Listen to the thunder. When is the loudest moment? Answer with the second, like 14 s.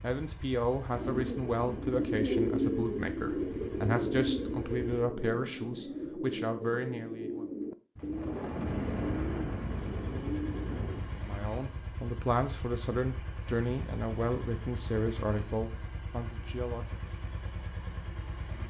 9 s.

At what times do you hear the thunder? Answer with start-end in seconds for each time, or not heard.
8.0-11.1.